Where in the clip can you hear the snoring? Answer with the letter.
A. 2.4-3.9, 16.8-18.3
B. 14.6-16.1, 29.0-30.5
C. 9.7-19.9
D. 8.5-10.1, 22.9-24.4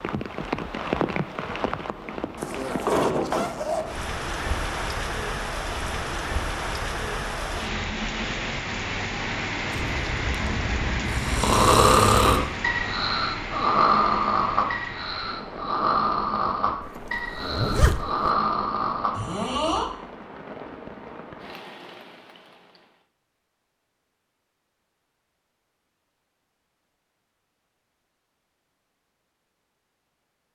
C.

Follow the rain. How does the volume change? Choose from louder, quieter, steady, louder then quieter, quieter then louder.
quieter.